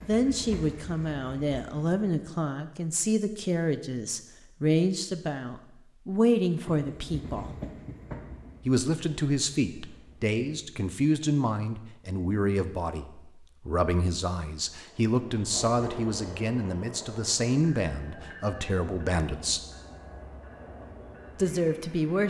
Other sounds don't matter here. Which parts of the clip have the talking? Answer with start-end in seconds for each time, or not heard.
0.0-7.5, 8.7-19.6, 21.4-22.2.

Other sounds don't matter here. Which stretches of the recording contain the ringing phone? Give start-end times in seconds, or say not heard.
not heard.